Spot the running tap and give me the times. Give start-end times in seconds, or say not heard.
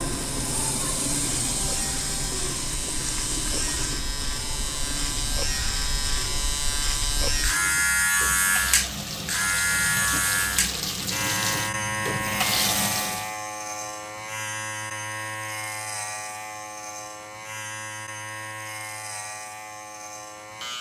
0.0-13.3.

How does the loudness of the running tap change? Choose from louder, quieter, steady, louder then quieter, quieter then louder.
quieter then louder.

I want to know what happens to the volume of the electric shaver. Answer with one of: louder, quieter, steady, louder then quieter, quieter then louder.
louder then quieter.